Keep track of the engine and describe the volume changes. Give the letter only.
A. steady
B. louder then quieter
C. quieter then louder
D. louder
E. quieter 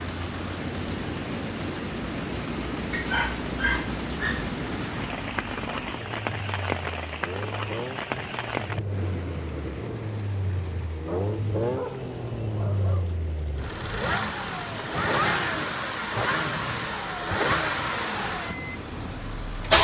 D.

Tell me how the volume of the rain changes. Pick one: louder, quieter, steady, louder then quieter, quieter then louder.
quieter.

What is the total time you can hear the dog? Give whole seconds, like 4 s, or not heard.
4 s.